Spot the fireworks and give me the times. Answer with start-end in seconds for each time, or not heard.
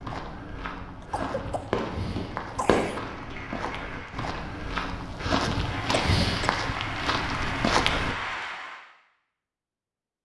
1.6-3.5.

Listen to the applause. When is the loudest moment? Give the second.
8 s.